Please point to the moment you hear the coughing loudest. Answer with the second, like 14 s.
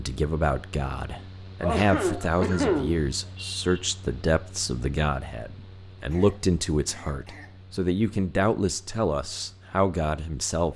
3 s.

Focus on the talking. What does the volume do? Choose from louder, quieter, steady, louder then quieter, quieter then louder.
steady.